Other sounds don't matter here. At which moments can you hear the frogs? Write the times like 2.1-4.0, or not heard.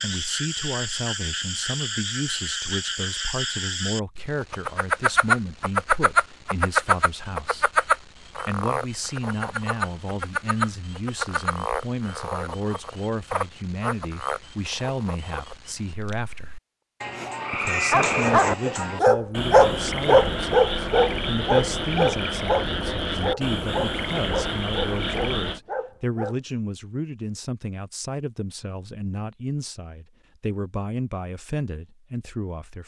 0.0-25.6.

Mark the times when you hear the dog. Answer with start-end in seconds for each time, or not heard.
17.2-26.4.